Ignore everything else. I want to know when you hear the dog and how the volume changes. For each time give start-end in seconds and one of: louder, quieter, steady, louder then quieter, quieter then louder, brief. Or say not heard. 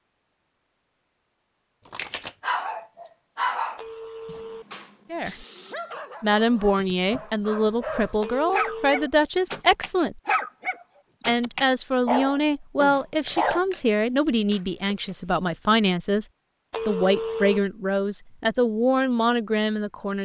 2.4-13.6 quieter then louder.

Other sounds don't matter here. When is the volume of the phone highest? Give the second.
17 s.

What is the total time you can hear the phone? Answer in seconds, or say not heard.
3 s.